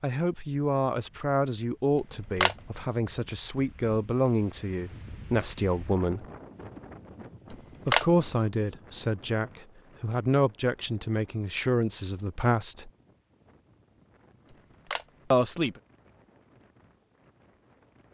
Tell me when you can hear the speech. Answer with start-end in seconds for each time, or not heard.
0.0-6.2, 7.8-12.9, 15.3-15.8.